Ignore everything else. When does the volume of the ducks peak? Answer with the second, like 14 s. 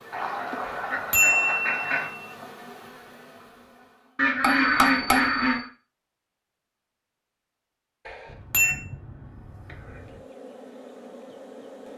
5 s.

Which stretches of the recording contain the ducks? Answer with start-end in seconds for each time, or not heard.
0.1-2.1, 4.2-5.7, 8.2-10.2.